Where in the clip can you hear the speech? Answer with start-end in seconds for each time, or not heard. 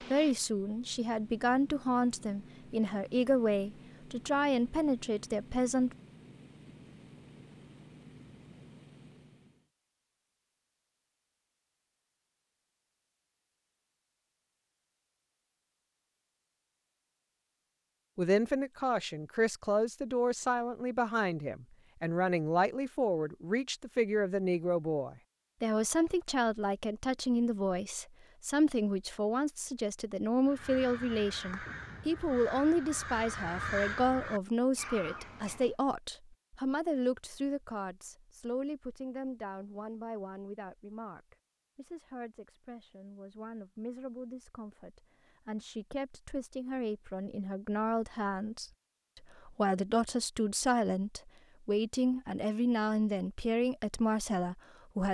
0.1-6.0, 18.1-48.7, 49.5-55.0.